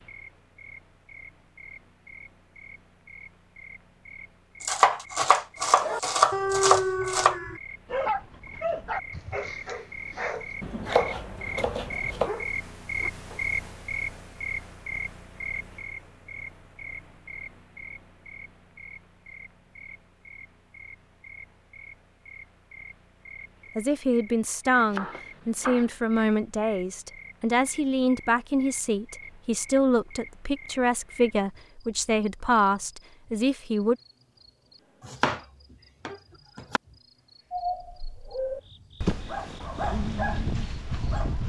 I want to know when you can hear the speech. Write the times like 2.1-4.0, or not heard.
23.8-34.0.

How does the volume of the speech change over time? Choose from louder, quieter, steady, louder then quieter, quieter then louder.
steady.